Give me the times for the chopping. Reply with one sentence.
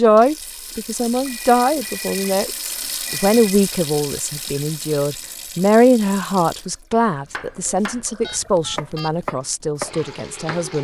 You can hear the chopping from 7.3 to 10.7 s.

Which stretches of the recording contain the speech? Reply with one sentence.
You can hear the speech from 0.0 to 10.8 s.